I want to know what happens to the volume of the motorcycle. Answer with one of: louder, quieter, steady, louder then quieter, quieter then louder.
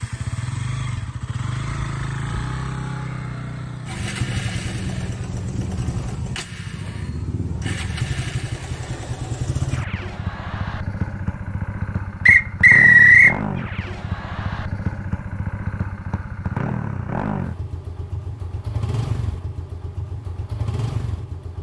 steady.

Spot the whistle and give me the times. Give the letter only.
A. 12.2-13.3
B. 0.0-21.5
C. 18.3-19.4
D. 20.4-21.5
A.